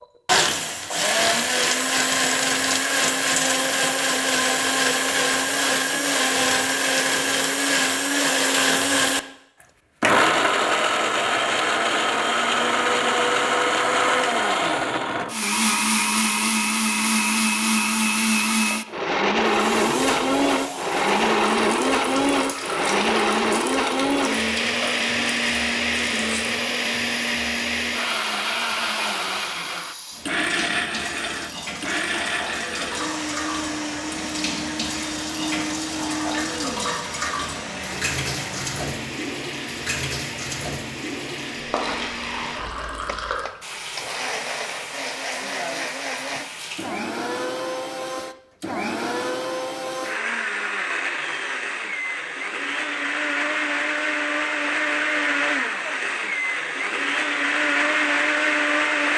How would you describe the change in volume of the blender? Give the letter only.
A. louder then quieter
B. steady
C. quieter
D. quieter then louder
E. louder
D.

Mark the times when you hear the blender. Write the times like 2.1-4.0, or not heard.
0.0-59.1.